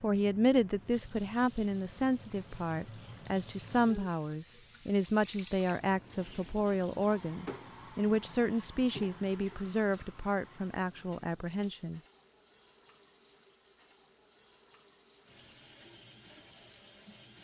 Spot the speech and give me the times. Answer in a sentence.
The speech can be heard from 0.0 to 12.0 s.